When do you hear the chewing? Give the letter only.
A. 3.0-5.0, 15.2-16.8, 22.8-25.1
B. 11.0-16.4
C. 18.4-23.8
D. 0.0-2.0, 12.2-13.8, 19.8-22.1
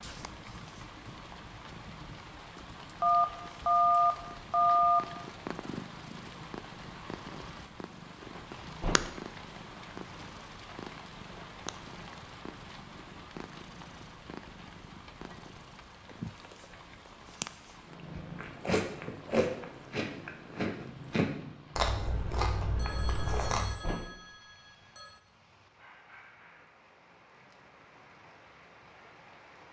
C.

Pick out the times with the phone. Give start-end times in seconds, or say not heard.
3.0-5.0, 15.2-16.8, 22.8-25.1.